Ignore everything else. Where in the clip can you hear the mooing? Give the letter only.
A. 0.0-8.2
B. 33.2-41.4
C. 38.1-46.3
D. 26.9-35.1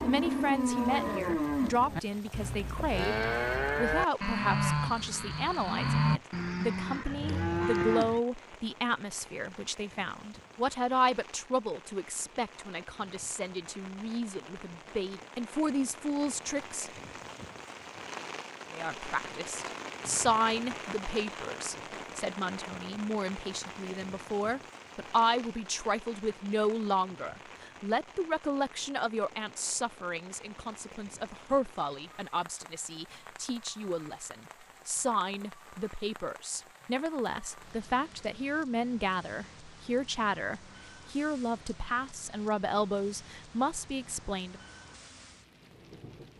A.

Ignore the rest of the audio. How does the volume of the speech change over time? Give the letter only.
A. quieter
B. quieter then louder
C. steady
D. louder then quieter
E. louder
C.